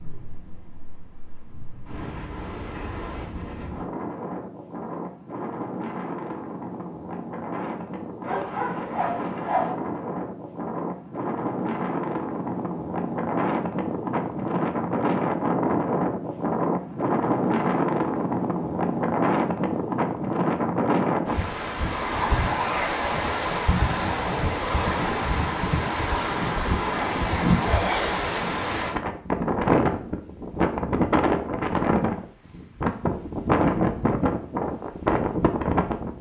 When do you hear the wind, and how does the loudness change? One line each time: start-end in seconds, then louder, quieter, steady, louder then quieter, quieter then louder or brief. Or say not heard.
0.0-36.1 louder.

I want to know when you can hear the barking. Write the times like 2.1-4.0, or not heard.
8.2-9.8.